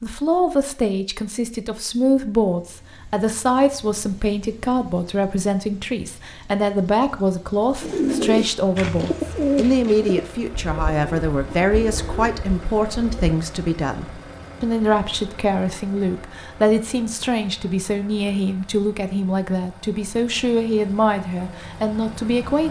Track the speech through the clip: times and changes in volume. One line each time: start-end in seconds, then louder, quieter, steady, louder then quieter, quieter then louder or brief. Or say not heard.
0.0-22.6 steady.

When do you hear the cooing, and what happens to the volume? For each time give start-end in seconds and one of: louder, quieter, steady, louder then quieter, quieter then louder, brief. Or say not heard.
7.8-13.3 quieter.